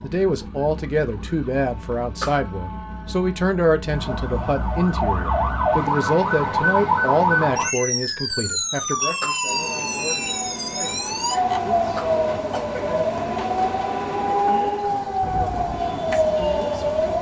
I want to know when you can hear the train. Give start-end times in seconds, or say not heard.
9.4-17.1.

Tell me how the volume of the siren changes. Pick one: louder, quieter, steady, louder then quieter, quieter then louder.
louder.